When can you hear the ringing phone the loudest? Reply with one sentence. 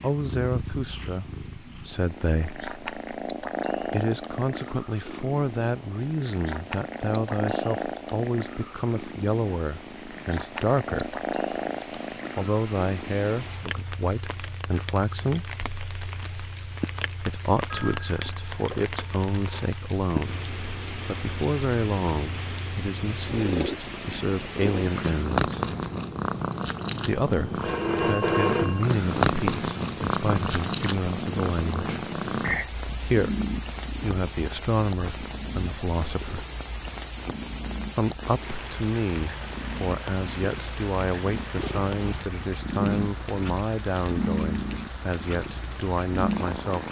The volume of the ringing phone peaks at 28 seconds.